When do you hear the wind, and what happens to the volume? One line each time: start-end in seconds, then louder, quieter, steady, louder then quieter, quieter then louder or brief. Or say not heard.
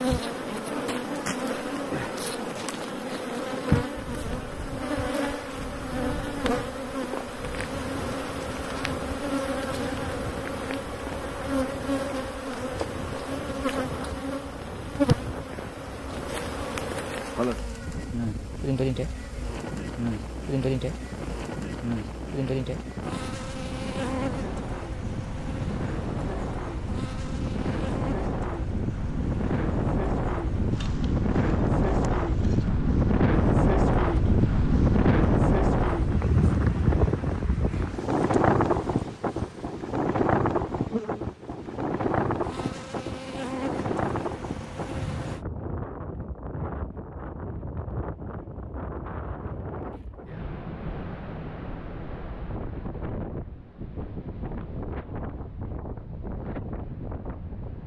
0.0-57.8 louder then quieter.